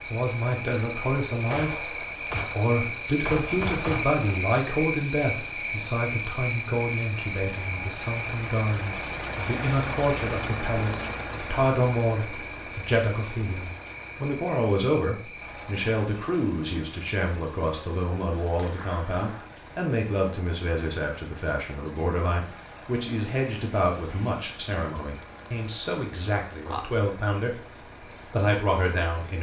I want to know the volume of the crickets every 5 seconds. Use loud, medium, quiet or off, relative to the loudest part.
loud, loud, medium, quiet, quiet, quiet.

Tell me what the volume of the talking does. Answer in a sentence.
The loudness of the talking stays about the same.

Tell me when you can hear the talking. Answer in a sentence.
You can hear the talking from 0.1 to 29.3 s.